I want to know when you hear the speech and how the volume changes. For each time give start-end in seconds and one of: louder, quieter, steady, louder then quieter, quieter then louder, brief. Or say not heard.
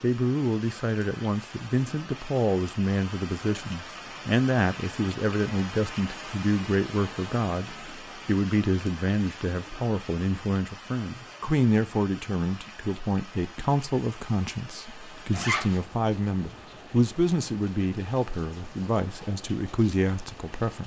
0.0-20.8 steady.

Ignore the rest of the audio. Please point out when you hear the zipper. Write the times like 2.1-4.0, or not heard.
15.3-15.8.